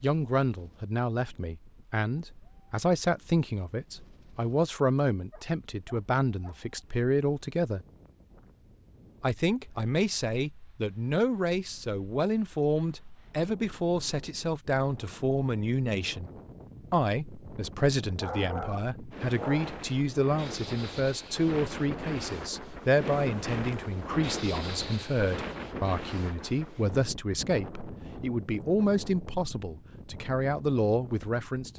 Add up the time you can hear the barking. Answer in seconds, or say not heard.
3 s.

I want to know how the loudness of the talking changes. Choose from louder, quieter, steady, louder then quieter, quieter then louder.
steady.